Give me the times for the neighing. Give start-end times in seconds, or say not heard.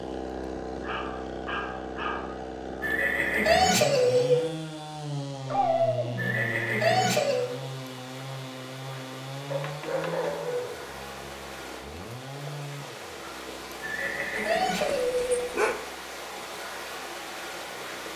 2.8-4.5, 6.2-7.5, 13.8-15.4.